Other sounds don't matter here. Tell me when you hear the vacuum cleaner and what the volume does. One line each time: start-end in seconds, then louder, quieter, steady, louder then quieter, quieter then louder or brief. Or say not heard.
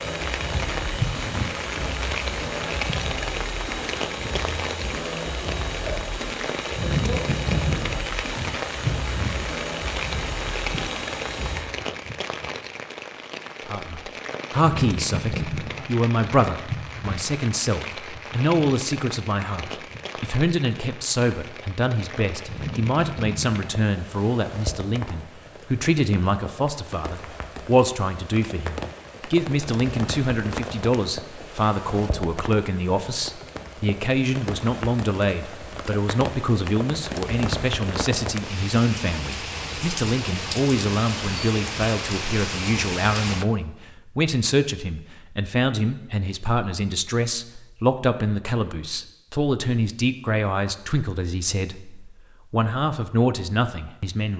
0.0-11.7 steady.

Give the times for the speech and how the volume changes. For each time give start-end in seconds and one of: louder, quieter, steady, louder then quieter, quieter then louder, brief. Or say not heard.
13.7-54.3 steady.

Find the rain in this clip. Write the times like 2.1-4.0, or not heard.
0.0-43.5.